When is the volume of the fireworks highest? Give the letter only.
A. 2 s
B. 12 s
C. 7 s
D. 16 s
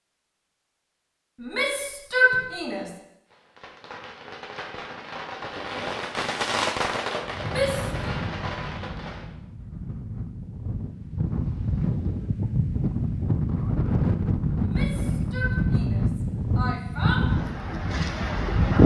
C.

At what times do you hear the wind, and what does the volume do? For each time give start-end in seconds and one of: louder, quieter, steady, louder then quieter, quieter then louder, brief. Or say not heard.
7.2-18.8 louder.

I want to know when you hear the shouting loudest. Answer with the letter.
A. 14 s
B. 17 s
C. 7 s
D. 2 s
D.